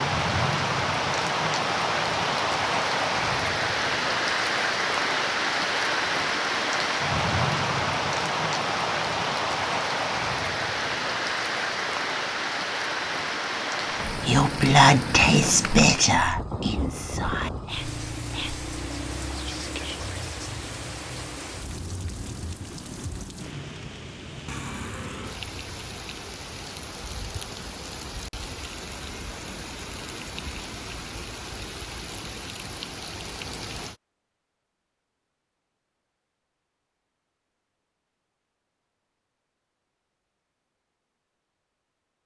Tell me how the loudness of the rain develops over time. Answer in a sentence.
The volume of the rain goes down.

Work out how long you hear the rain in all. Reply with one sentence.
You can hear the rain for 34 seconds altogether.